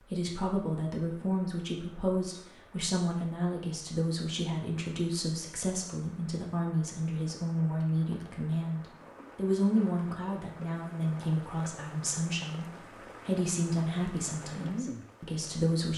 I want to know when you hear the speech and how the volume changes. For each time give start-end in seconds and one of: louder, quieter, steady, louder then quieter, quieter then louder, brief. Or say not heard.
0.0-15.9 steady.